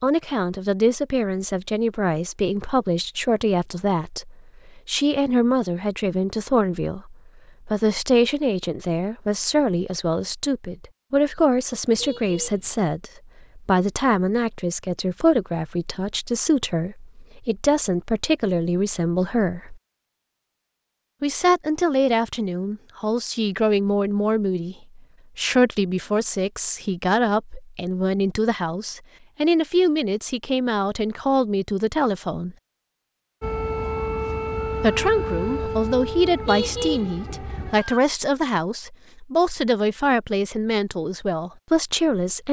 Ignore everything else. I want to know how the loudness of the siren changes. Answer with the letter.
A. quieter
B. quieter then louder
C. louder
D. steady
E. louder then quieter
A.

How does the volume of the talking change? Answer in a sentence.
The volume of the talking stays about the same.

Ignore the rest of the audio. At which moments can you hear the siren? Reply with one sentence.
The siren can be heard from 33.4 to 38.0 s.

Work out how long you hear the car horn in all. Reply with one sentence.
The car horn can be heard for 2 seconds in total.